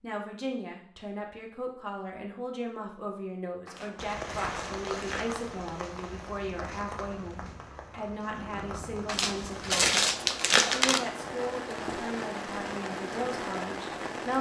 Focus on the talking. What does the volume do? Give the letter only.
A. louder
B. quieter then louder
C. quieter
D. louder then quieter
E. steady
E.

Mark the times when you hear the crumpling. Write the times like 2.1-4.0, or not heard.
3.6-5.2, 9.1-11.0.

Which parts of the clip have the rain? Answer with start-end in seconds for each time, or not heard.
4.0-14.3.